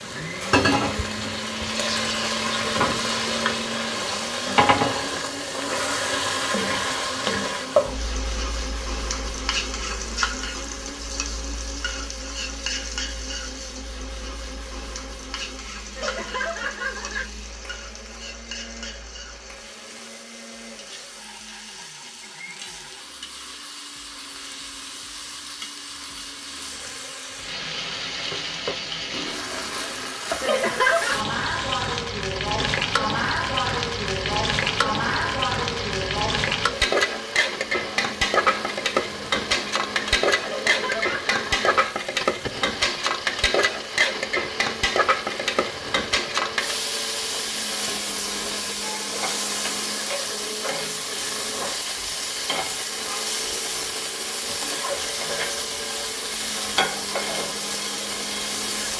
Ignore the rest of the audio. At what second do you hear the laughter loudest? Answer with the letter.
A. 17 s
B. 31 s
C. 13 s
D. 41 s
B.